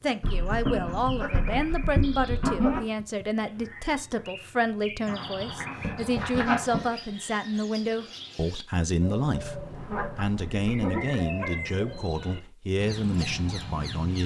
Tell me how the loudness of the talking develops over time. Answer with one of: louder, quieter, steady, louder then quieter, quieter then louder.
steady.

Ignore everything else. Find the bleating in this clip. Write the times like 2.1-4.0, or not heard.
0.2-2.8, 5.0-6.8, 9.7-11.6.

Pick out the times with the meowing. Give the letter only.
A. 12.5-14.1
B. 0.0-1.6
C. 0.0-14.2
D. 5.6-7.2
D.